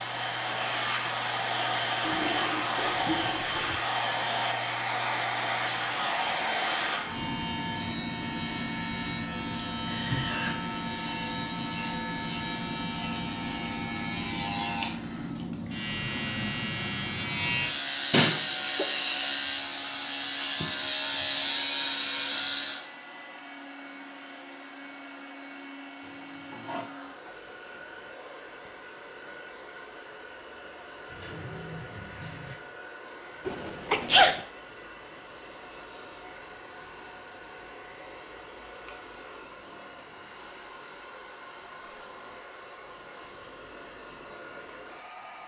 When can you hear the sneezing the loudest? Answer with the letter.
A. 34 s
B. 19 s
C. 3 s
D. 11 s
A.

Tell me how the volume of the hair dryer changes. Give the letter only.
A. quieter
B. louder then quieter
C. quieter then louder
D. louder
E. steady
A.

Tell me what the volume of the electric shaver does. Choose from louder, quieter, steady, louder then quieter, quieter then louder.
louder.